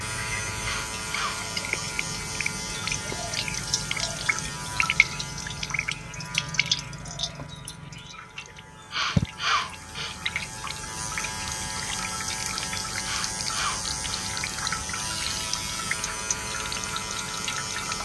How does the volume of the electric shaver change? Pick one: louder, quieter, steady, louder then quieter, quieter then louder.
quieter then louder.